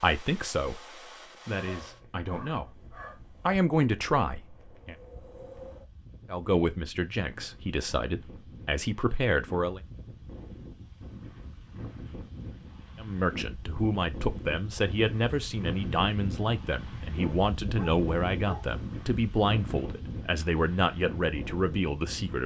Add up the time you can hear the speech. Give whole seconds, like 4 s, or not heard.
18 s.